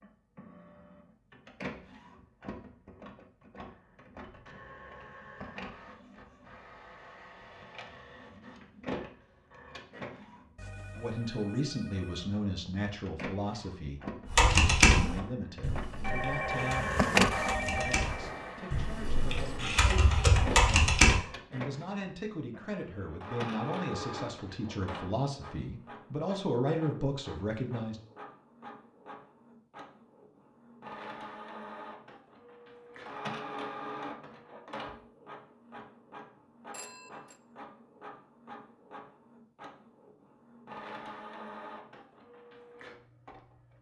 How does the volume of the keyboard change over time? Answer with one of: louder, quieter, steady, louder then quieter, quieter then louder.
quieter then louder.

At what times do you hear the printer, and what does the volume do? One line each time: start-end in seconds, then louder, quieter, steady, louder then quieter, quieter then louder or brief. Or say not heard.
0.0-43.7 louder then quieter.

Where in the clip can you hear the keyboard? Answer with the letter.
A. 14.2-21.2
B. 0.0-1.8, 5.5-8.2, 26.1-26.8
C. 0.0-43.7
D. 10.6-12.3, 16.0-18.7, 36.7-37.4
A.